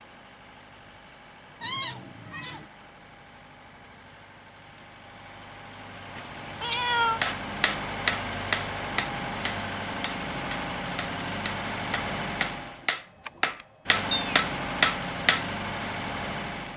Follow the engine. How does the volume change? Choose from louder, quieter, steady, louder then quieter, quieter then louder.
louder.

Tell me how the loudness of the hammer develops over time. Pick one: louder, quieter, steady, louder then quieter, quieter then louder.
quieter then louder.